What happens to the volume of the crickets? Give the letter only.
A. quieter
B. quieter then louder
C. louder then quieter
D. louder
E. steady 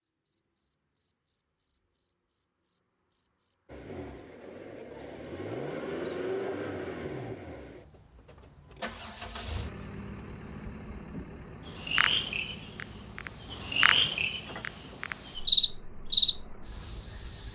D.